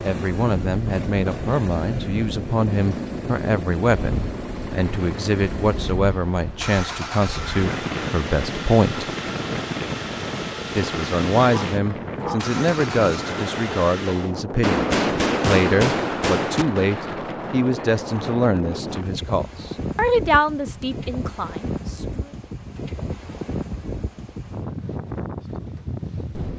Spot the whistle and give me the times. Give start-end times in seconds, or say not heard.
not heard.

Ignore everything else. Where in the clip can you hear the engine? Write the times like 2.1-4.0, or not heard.
0.0-14.3.